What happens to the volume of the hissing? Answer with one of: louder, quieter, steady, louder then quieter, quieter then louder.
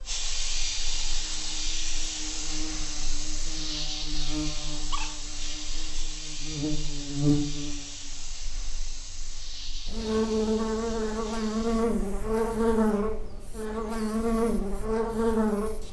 quieter.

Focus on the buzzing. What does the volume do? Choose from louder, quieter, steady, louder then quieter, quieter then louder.
louder.